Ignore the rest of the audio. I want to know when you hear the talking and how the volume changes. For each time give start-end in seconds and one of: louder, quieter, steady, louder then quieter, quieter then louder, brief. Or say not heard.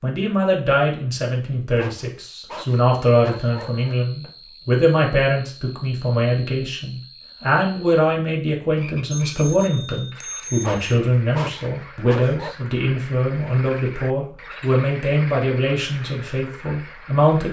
0.0-17.4 steady.